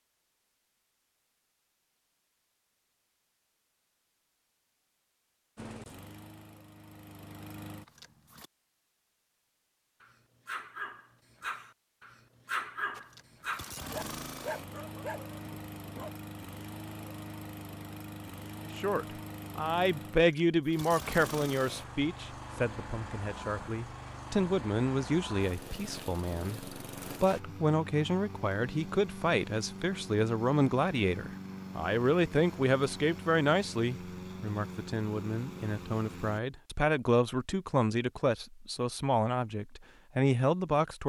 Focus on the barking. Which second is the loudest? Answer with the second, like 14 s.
13 s.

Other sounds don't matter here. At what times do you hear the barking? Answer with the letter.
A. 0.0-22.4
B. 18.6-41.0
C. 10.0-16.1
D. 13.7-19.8
C.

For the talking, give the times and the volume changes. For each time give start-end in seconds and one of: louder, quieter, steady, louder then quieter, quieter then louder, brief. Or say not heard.
18.6-41.0 steady.